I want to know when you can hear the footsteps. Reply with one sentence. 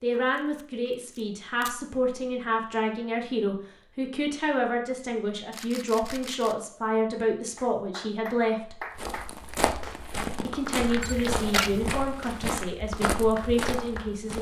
The footsteps can be heard from 8.8 to 14.3 s.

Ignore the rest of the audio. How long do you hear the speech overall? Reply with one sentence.
The speech can be heard for 13 seconds in total.